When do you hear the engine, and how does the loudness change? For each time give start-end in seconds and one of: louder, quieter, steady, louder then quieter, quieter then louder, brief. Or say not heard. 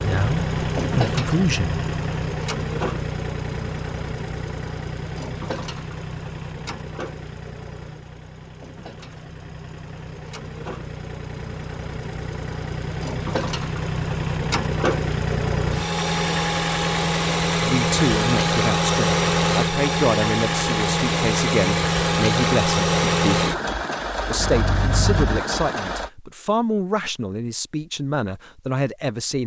0.0-26.1 quieter then louder.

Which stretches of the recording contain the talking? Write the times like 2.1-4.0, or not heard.
0.0-1.8, 17.5-23.5, 24.3-29.4.